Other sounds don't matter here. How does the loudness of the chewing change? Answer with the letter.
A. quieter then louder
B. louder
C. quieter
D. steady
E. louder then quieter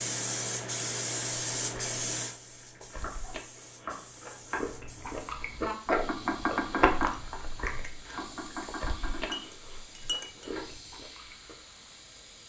E.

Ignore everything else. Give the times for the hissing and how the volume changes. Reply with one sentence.
The hissing can be heard from 0.0 to 12.4 s, getting quieter.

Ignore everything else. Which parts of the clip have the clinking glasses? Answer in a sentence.
The clinking glasses can be heard from 9.3 to 10.6 s.